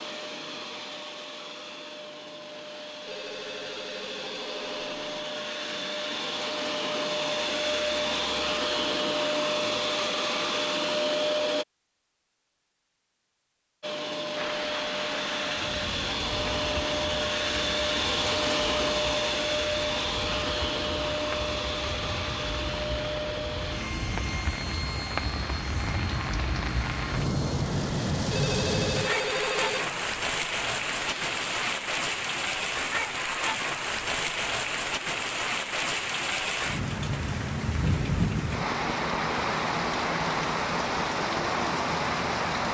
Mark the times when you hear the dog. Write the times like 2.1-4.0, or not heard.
not heard.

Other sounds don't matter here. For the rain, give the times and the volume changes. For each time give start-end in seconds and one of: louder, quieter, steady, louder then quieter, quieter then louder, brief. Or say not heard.
14.3-42.7 louder.